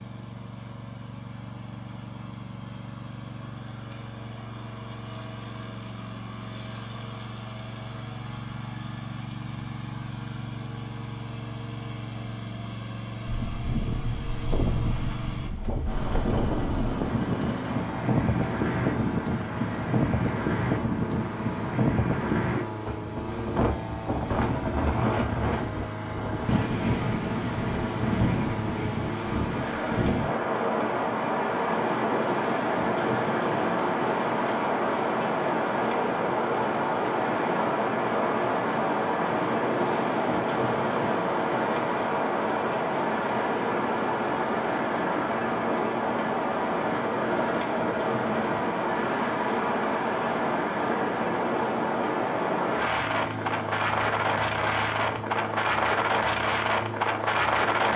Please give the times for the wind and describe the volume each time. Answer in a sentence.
The wind can be heard from 13.2 to 57.9 s, at a steady volume.